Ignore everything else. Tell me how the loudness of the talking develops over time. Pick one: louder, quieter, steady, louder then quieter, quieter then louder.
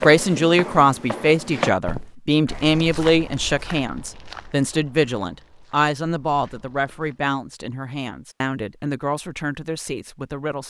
quieter.